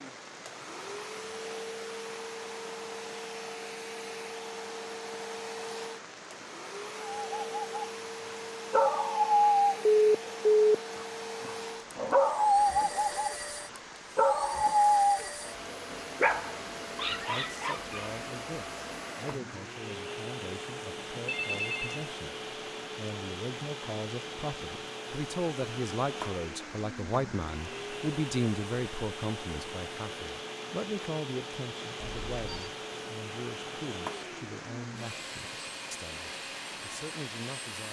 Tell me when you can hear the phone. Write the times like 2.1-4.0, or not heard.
9.8-10.8, 21.1-22.1, 31.9-32.8.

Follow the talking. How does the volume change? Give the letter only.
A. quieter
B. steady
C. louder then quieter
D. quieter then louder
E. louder
C.